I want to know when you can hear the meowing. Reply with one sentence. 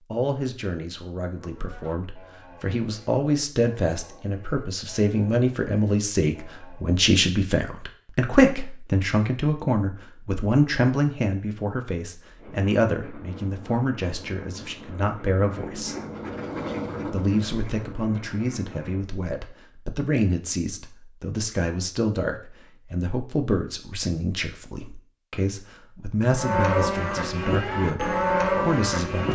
You can't hear the meowing here.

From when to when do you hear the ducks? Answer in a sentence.
The ducks can be heard from 12.3 to 19.1 s.